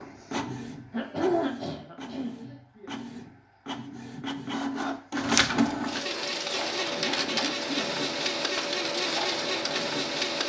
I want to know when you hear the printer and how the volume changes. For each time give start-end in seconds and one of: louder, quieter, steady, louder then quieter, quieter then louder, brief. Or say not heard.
0.0-10.4 louder.